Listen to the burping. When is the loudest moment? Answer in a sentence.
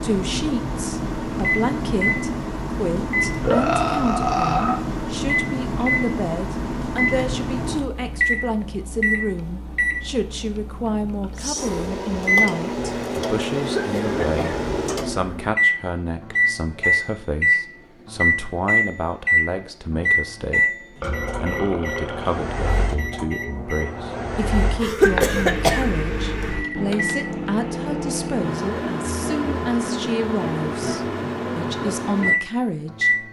The volume of the burping peaks at 4 seconds.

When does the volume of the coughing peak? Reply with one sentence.
The volume of the coughing peaks at 25 seconds.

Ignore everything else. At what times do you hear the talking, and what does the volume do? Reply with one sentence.
The talking can be heard from 0.0 to 33.2 s, at a steady volume.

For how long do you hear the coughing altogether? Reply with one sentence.
The coughing can be heard for 2 seconds in total.